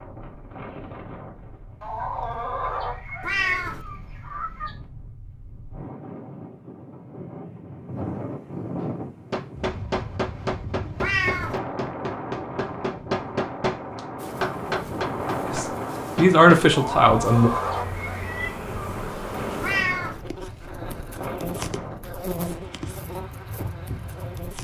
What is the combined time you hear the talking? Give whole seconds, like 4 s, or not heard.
2 s.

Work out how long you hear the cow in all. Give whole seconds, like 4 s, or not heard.
not heard.